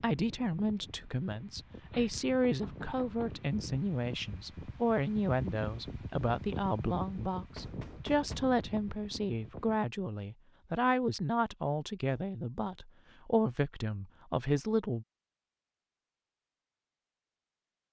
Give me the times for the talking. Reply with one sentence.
The talking can be heard from 0.0 to 15.1 s.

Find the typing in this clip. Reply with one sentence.
The typing can't be heard in this clip.